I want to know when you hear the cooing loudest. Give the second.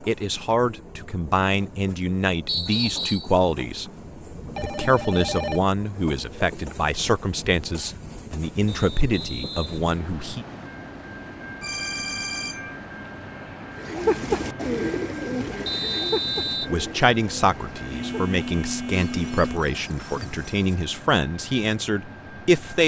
14 s.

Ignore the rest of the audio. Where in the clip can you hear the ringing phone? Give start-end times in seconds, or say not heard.
4.3-5.6, 11.6-12.8, 17.9-19.6.